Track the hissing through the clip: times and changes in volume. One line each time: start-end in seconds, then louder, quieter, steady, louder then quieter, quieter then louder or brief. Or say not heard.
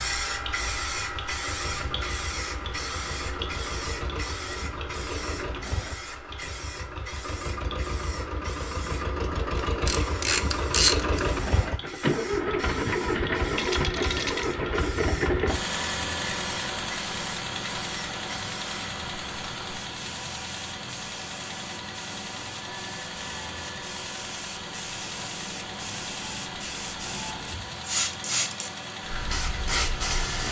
0.0-30.4 quieter then louder.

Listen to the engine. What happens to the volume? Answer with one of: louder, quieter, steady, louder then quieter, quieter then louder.
louder then quieter.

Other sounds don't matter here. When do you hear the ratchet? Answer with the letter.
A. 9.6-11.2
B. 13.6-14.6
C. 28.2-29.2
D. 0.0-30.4
A.